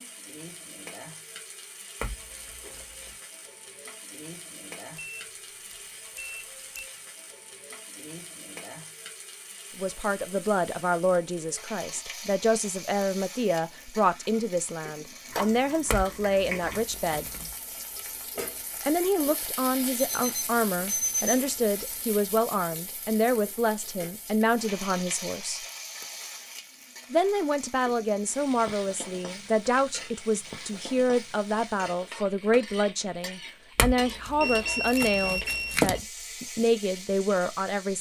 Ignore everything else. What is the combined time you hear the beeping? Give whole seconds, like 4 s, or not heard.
5 s.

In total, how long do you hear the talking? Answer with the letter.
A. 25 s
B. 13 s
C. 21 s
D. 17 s
A.